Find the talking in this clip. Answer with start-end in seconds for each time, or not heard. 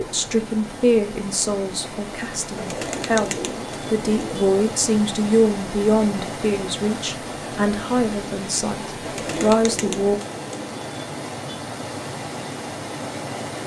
0.0-10.2.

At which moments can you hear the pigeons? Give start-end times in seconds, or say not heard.
2.5-4.5, 9.1-10.8.